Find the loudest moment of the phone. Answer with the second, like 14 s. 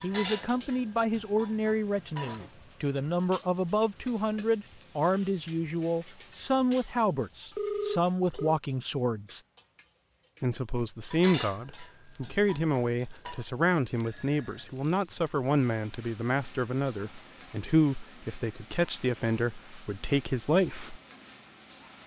8 s.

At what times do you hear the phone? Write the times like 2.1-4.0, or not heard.
7.5-8.6, 14.0-14.7.